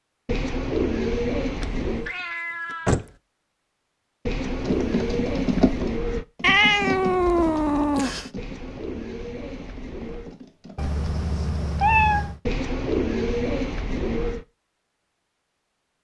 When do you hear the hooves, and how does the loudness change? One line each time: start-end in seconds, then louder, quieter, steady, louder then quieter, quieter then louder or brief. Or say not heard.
4.5-10.9 quieter.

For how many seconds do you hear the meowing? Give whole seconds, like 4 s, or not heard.
5 s.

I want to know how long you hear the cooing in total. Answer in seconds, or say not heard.
8 s.